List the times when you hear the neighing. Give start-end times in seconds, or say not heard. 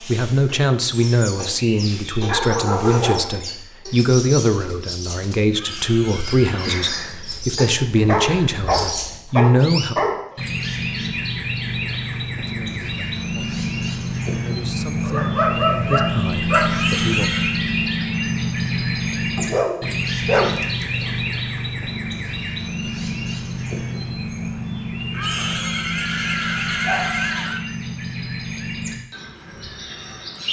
5.5-6.8, 16.7-17.6, 25.1-27.6.